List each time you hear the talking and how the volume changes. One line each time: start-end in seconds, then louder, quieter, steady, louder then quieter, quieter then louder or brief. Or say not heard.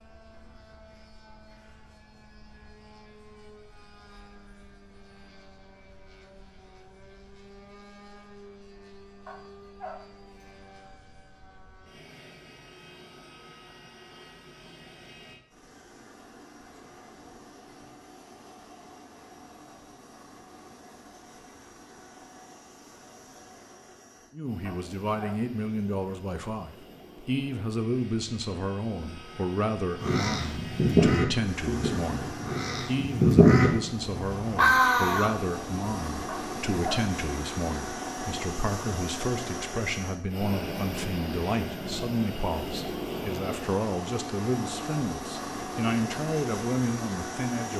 24.3-47.7 steady.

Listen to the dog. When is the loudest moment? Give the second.
37 s.